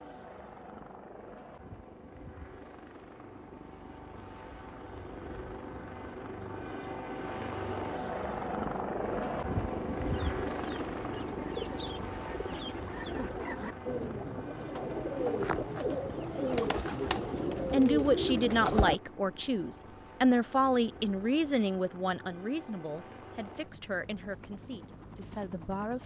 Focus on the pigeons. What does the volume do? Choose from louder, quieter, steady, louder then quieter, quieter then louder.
louder.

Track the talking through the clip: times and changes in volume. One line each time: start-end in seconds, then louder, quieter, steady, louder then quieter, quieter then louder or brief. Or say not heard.
17.7-26.0 quieter.